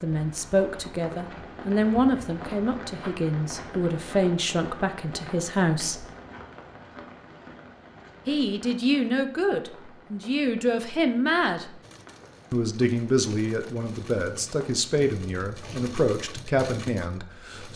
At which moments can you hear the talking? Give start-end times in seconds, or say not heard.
0.0-6.0, 8.2-11.7, 12.5-17.7.